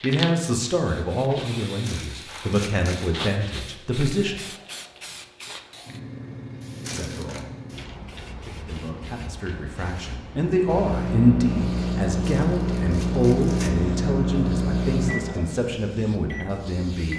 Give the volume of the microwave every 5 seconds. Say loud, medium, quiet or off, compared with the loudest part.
off, off, loud, medium.